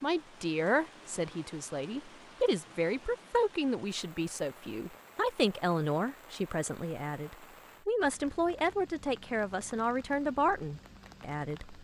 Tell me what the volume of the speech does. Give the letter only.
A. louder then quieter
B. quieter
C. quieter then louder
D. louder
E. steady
E.